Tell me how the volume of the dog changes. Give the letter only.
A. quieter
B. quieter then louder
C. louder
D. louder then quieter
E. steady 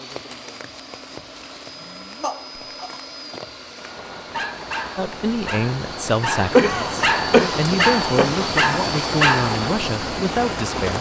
C.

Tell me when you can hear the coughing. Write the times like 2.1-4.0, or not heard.
2.2-3.9, 6.5-8.3.